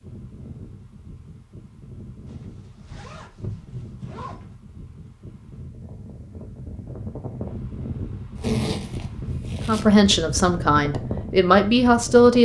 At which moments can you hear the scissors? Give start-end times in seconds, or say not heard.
not heard.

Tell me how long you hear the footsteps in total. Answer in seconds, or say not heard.
not heard.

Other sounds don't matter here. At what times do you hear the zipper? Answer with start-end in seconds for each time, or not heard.
2.2-4.5, 8.3-9.8.